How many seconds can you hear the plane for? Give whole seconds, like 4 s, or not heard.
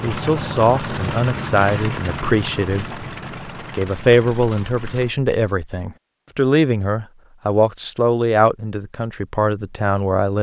5 s.